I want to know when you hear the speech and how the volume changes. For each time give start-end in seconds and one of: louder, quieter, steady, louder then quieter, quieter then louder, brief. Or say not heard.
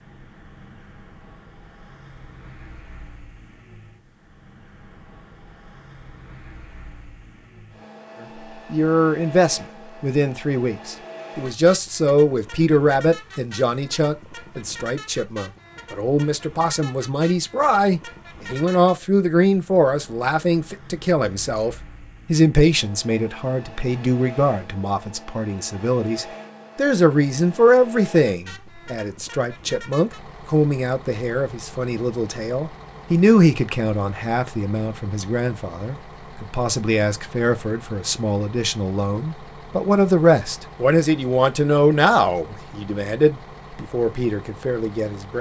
8.2-45.3 steady.